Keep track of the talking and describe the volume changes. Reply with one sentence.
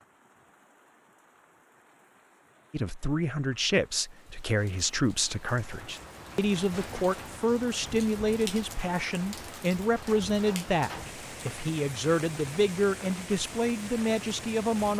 The loudness of the talking stays about the same.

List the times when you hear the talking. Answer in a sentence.
You can hear the talking from 2.7 to 14.9 s.